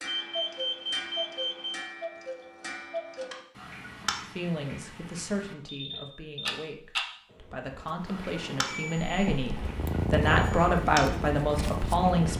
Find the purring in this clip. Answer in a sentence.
The purring can be heard from 7.7 to 12.3 s.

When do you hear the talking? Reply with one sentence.
You can hear the talking from 4.3 to 12.3 s.